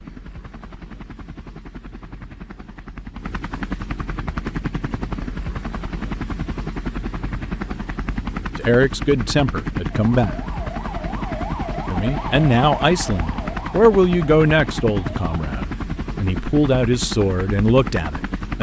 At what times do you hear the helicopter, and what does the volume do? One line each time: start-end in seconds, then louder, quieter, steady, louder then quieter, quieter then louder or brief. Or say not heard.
0.0-18.5 louder.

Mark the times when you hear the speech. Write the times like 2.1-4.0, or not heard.
8.6-10.3, 11.9-18.5.